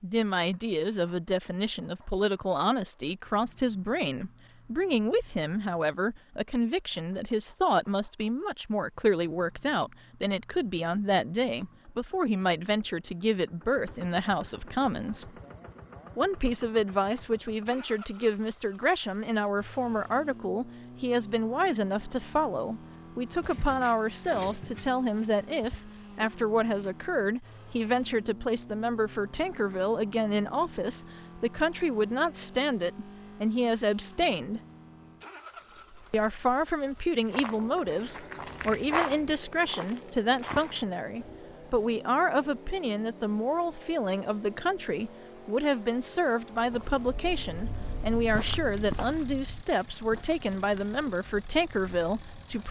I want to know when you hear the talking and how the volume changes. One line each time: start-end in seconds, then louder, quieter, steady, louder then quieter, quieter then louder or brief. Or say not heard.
0.0-15.3 steady
16.1-34.6 steady
36.1-52.6 steady.